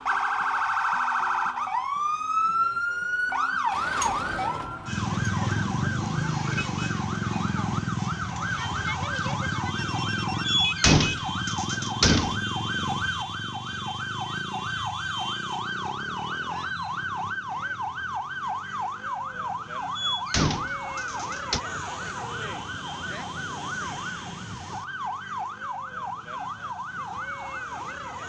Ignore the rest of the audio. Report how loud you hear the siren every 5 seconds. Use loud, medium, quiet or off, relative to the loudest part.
loud, loud, loud, medium, medium, medium.